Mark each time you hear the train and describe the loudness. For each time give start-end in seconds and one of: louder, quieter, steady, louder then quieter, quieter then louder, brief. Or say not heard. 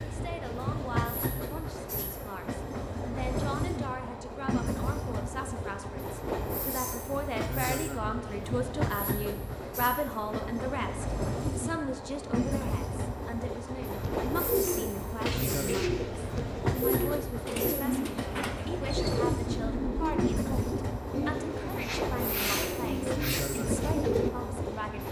0.0-25.0 steady.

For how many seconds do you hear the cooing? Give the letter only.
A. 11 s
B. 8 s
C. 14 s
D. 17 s
A.